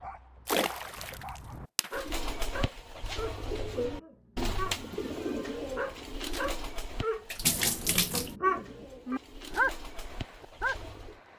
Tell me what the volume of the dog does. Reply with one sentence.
The loudness of the dog goes up.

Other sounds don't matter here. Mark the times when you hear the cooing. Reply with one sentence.
The cooing can be heard from 1.9 to 11.2 s.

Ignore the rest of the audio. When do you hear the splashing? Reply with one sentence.
The splashing can be heard from 0.5 to 2.0 s and from 7.3 to 8.3 s.